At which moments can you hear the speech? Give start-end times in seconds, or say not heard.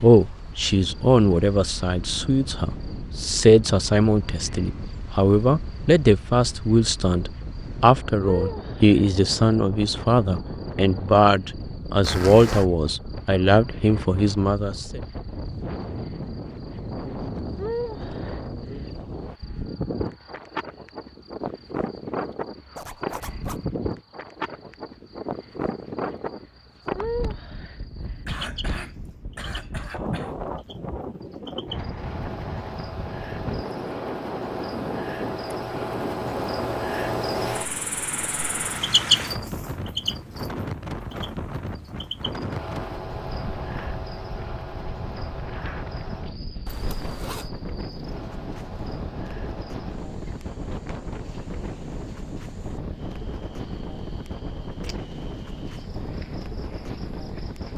0.0-15.0.